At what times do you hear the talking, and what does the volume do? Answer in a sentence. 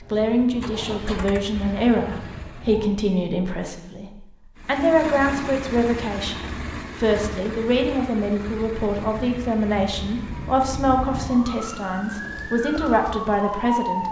You can hear the talking from 0.0 to 14.0 s, at a steady volume.